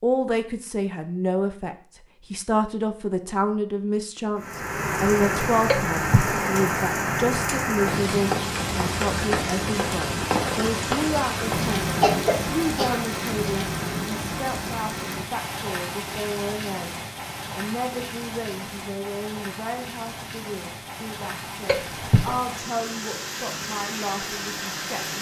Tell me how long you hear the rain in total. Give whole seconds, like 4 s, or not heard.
21 s.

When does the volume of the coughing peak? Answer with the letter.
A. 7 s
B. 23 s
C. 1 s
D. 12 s
D.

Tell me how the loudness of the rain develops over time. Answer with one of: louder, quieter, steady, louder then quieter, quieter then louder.
quieter.